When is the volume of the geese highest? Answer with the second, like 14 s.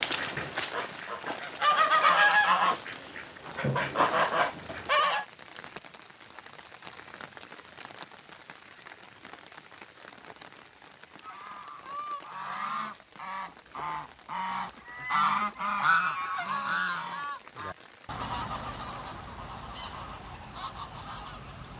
2 s.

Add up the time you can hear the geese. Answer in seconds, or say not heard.
16 s.